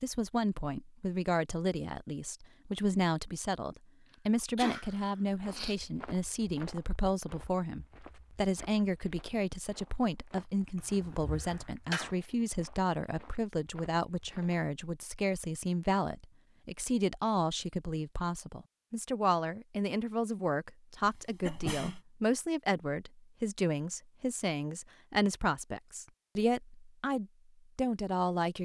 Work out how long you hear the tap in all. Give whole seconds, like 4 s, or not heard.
not heard.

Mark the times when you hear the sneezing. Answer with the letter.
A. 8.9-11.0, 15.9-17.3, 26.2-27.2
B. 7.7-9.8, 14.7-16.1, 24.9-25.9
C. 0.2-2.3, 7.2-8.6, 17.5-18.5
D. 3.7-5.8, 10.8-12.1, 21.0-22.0
D.